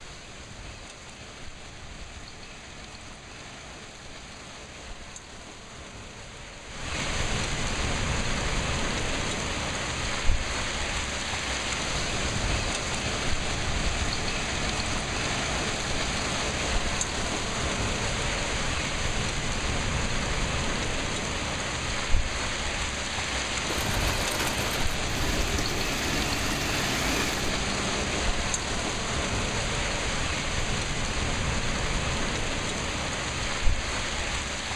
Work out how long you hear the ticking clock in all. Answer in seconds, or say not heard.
not heard.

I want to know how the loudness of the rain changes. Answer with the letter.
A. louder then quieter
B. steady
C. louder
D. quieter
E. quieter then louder
C.